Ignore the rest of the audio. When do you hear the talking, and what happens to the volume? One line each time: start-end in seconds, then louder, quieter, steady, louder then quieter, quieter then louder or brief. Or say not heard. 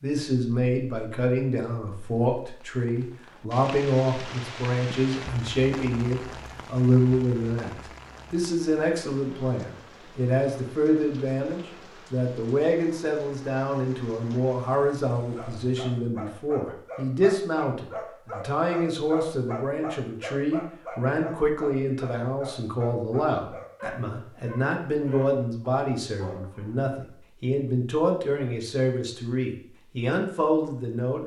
0.0-31.2 steady.